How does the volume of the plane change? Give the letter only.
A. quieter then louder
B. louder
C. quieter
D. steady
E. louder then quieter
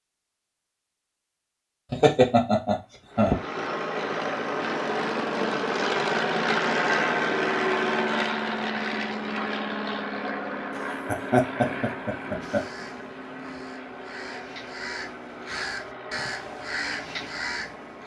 C.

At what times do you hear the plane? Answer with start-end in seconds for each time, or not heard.
3.1-18.0.